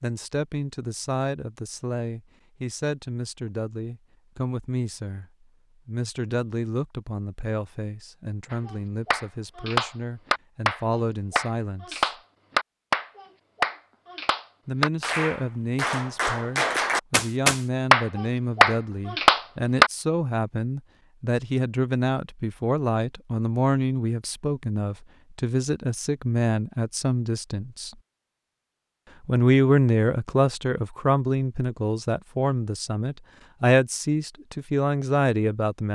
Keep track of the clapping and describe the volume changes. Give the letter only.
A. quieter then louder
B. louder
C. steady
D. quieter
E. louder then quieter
B.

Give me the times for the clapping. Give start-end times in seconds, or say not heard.
8.5-19.9.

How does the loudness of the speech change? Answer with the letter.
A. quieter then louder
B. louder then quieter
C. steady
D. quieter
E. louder
E.